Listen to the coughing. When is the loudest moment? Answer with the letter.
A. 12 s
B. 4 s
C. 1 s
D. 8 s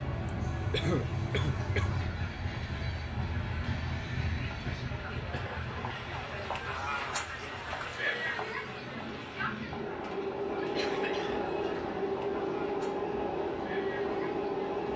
C.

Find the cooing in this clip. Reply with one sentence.
You can't hear the cooing here.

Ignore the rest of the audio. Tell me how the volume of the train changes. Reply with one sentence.
The volume of the train goes down, then up.